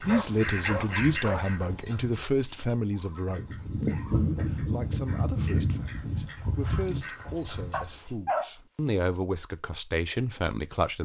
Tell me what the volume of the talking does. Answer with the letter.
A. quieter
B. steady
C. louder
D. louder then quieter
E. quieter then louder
E.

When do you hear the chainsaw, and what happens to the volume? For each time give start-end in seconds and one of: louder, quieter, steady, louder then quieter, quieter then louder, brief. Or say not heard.
not heard.